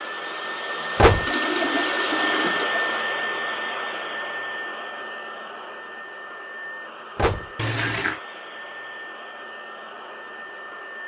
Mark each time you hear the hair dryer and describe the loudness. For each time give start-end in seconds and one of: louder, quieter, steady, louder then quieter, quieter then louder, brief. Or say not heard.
0.0-11.0 quieter.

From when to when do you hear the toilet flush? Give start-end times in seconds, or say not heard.
1.2-3.1, 7.5-8.2.